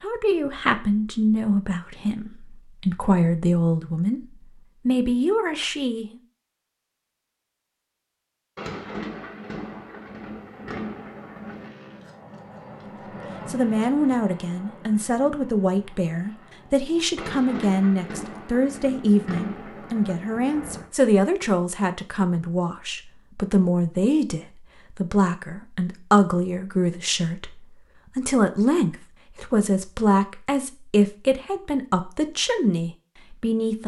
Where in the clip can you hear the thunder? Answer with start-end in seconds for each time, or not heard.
8.6-11.7, 17.1-20.9.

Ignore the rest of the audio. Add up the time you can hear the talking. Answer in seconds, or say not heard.
26 s.